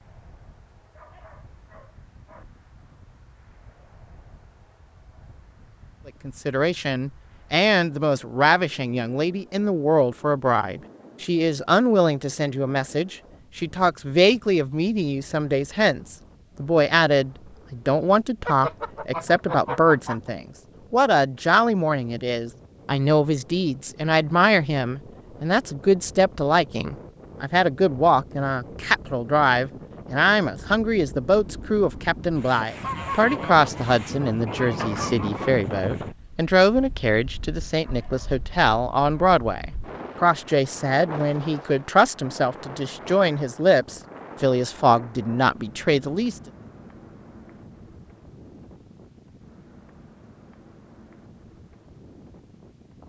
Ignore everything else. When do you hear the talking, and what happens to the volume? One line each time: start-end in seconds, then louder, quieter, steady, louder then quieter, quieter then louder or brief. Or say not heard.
6.0-46.4 steady.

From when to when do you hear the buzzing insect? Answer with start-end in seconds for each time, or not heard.
not heard.